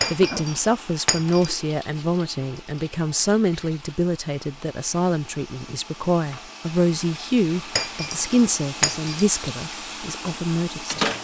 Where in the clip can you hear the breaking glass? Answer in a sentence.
You can hear the breaking glass from 0.0 to 1.5 s and from 7.8 to 9.2 s.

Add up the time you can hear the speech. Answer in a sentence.
You can hear the speech for 11 seconds altogether.